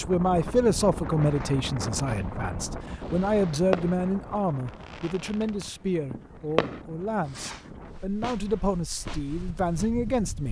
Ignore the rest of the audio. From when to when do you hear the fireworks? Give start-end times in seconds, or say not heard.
1.9-9.9.